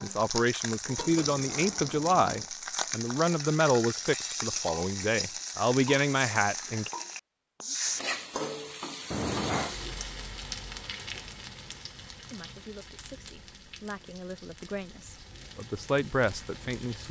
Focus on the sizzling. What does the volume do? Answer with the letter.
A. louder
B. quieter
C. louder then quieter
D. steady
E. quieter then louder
B.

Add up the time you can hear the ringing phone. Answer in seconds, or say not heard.
2 s.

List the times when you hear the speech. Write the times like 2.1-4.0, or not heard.
0.0-6.9, 12.3-17.0.